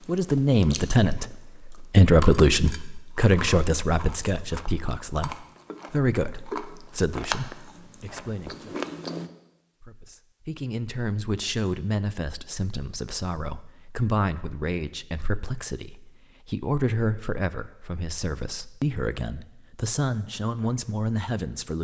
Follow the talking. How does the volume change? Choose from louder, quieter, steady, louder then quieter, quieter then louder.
quieter.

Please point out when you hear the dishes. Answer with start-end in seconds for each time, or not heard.
not heard.